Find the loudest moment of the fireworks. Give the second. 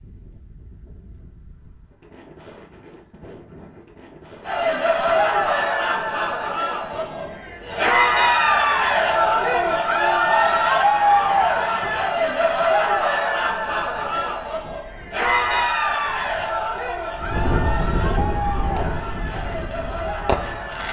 20 s.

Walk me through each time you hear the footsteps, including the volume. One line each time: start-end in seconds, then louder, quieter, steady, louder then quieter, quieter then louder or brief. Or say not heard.
not heard.